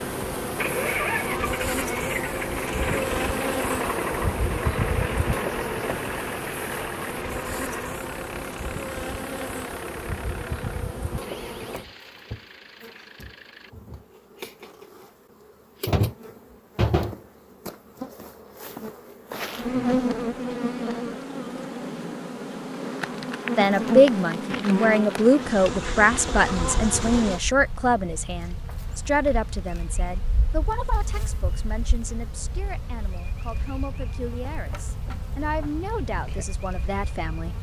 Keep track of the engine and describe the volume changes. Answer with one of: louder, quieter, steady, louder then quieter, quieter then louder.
quieter.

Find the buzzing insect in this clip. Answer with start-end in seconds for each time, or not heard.
0.0-37.5.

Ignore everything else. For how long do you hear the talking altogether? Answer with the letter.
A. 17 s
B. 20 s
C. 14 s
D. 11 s
C.